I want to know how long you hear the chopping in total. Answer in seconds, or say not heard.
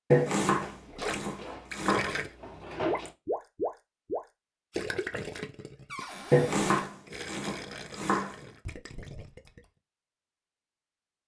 4 s.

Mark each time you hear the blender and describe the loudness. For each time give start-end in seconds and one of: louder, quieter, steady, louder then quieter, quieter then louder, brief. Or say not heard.
not heard.